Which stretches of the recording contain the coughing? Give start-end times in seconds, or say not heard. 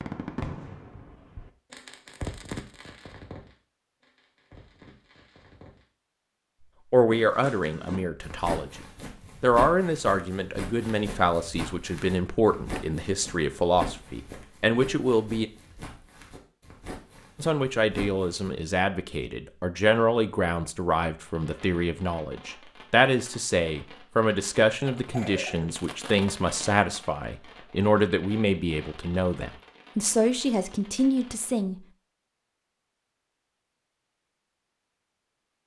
25.1-25.8.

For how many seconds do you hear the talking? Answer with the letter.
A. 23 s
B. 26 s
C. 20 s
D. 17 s
A.